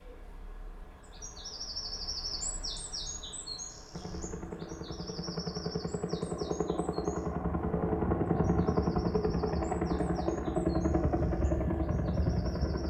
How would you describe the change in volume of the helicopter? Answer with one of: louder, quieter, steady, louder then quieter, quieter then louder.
louder.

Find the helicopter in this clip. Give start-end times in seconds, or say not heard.
3.9-12.8.